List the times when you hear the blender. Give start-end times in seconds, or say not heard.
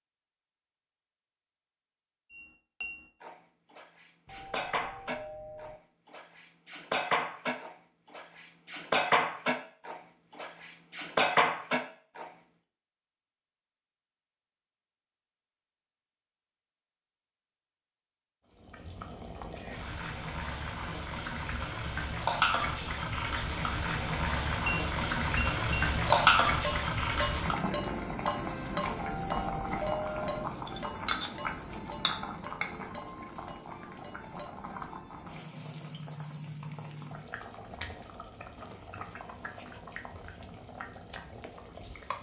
not heard.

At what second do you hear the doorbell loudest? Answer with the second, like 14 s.
30 s.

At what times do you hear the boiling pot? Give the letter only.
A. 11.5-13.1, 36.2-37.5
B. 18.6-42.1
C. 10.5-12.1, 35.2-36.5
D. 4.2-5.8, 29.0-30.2
B.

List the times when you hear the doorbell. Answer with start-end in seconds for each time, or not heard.
4.2-5.8, 29.0-30.2.